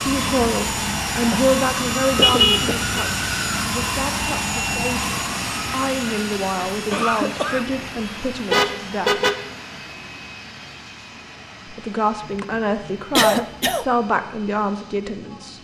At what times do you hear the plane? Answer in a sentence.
The plane can be heard from 0.0 to 15.5 s.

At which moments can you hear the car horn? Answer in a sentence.
The car horn can be heard from 2.2 to 2.9 s and from 8.5 to 9.3 s.